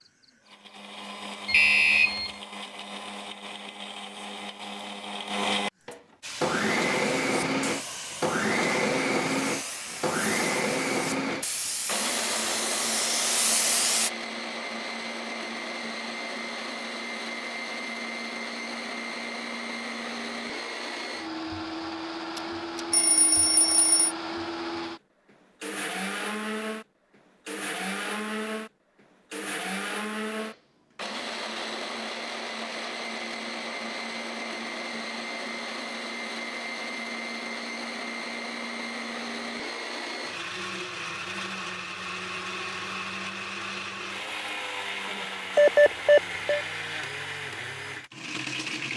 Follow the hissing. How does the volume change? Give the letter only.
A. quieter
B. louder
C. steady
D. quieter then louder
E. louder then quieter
B.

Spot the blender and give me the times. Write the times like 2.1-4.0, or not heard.
0.0-48.9.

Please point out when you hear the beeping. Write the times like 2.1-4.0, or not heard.
1.4-2.3, 22.4-24.1, 45.5-46.6.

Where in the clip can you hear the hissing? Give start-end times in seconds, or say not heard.
6.2-14.1.